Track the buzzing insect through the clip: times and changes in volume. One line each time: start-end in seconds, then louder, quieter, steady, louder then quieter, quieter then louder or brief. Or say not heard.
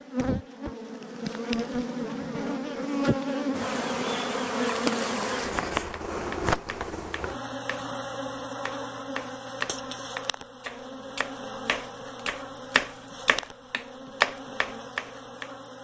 0.0-15.7 quieter.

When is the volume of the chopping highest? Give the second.
14 s.